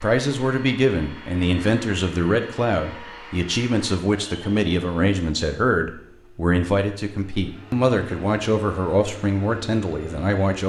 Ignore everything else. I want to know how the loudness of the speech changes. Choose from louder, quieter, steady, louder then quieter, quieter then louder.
steady.